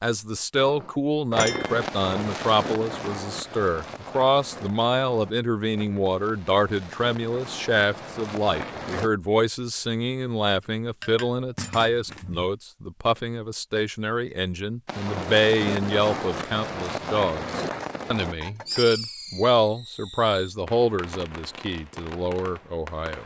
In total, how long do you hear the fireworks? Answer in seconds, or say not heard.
17 s.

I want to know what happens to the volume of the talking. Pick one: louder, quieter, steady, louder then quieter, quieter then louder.
steady.